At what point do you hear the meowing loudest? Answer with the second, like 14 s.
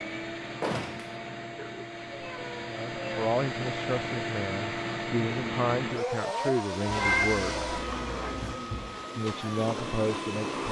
7 s.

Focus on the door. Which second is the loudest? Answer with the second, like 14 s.
1 s.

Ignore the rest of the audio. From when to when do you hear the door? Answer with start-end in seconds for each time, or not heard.
0.6-1.1, 8.4-9.1.